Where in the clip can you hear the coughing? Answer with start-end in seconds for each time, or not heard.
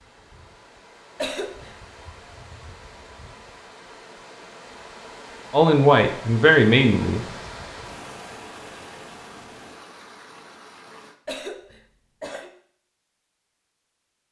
1.1-1.7, 11.2-12.5.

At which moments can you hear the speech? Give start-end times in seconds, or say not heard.
5.5-7.2.